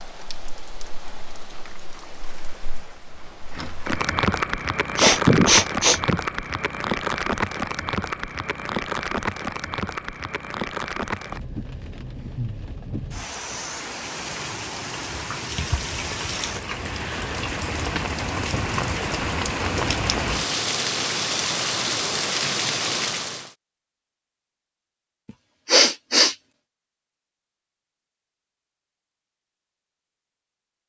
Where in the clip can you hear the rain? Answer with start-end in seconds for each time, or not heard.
0.0-23.5.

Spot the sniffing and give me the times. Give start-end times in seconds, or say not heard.
5.0-6.2, 25.6-26.4.